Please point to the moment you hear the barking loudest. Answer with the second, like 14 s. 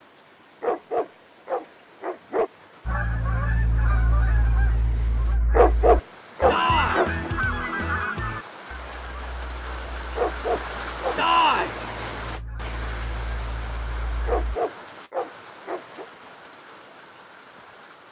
6 s.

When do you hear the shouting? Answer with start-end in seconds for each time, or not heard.
6.5-7.0, 11.2-11.7.